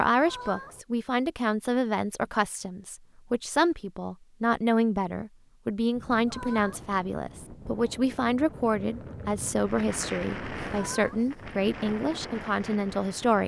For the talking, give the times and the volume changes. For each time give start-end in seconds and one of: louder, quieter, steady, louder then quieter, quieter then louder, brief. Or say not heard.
0.0-13.4 steady.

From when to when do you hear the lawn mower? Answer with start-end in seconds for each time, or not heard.
not heard.